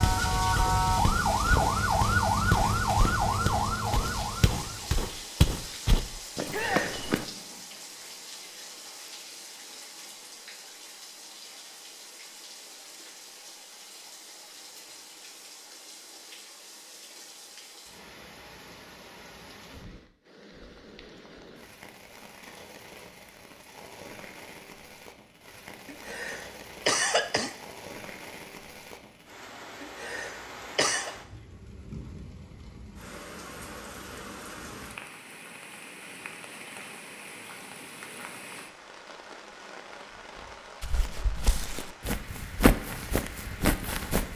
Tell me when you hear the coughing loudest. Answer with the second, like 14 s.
27 s.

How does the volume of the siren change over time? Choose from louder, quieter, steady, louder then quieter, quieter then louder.
quieter.